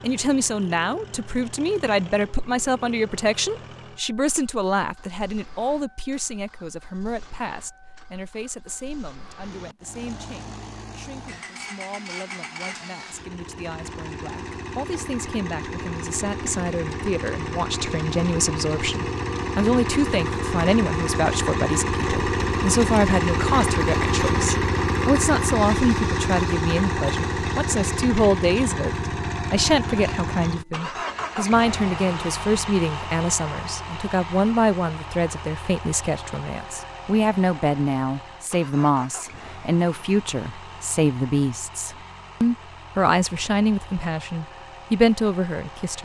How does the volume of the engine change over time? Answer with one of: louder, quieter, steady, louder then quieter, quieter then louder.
louder then quieter.